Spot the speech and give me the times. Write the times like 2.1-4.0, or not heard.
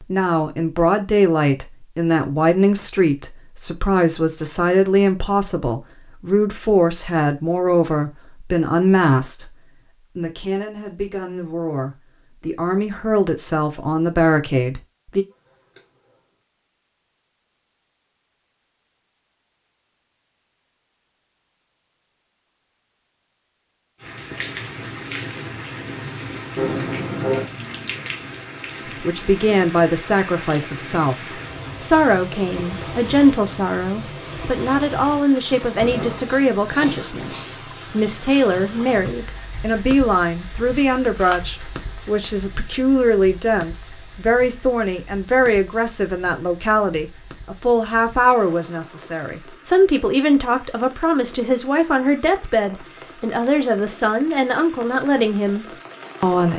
0.0-15.2, 29.0-56.5.